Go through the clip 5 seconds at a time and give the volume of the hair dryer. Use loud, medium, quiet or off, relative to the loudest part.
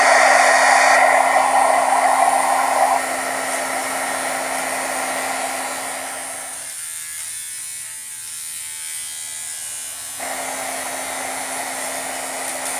loud, quiet, quiet.